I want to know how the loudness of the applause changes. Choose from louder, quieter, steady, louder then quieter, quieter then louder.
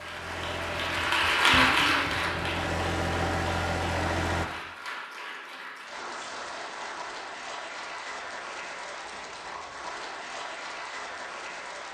quieter.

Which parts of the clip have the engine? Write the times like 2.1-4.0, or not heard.
0.0-4.5.